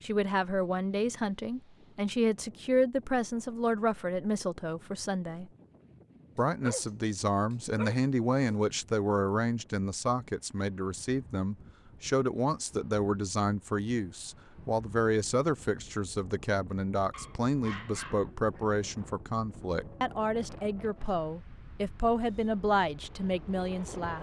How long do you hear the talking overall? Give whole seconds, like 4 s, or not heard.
23 s.